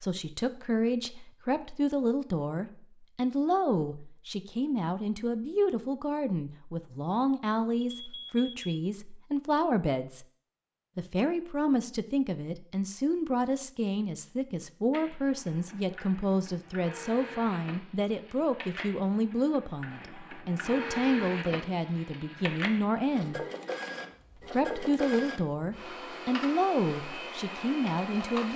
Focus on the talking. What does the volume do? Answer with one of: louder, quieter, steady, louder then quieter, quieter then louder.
steady.